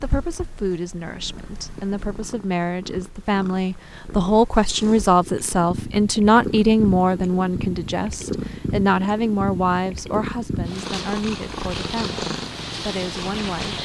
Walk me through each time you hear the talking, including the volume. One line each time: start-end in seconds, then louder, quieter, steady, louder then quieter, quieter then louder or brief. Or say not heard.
0.0-13.7 louder then quieter.